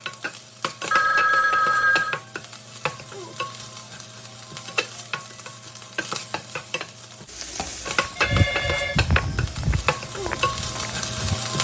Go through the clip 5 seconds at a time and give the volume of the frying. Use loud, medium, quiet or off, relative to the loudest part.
medium, loud, loud.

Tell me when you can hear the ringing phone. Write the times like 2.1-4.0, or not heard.
0.9-2.2, 8.2-9.0.